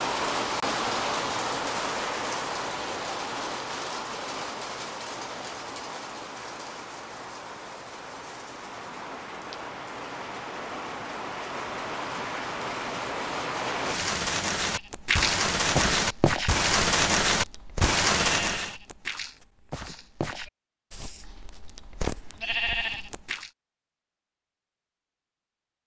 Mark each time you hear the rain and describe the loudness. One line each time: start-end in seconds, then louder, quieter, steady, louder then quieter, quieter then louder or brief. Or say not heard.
0.0-18.8 quieter then louder.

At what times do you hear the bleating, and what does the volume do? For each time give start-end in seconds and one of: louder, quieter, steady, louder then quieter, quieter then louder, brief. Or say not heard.
14.6-23.5 quieter then louder.